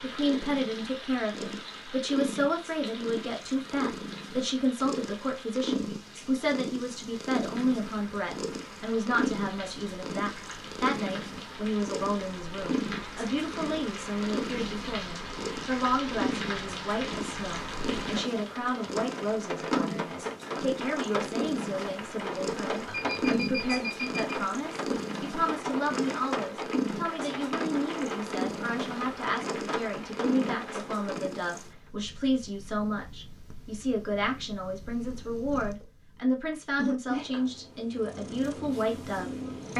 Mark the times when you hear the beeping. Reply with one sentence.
The beeping can be heard from 22.9 to 24.4 s.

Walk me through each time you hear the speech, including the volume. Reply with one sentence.
The speech can be heard from 0.0 to 39.7 s, at a steady volume.